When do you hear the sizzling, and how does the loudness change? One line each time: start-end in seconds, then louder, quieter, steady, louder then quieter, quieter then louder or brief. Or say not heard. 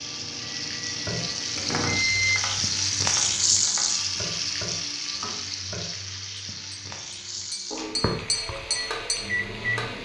0.0-10.0 louder then quieter.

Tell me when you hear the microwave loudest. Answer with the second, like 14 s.
2 s.